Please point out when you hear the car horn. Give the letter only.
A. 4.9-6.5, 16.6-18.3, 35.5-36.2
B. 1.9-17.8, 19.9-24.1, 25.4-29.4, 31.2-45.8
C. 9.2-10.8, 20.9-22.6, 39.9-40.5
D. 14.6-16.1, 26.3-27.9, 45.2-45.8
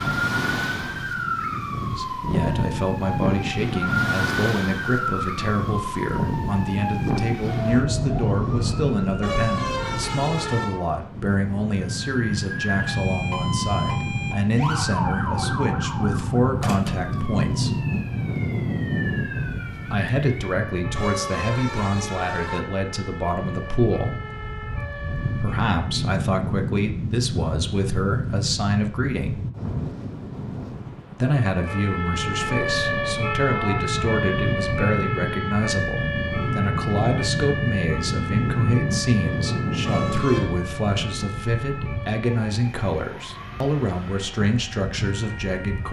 C.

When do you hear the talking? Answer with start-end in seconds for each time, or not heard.
1.9-17.8, 19.9-24.1, 25.4-29.4, 31.2-45.8.